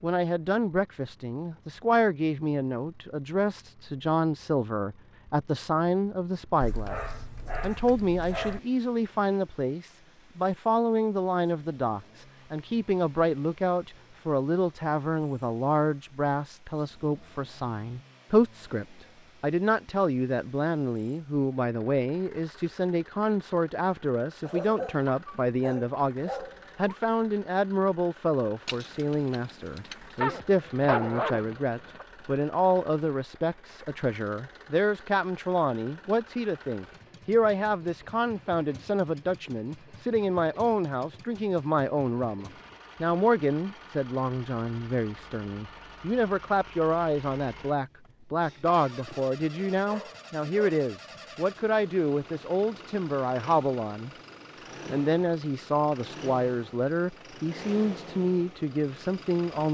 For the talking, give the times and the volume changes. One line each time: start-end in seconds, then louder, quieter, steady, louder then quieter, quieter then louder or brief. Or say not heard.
0.0-54.1 steady
54.9-59.6 steady.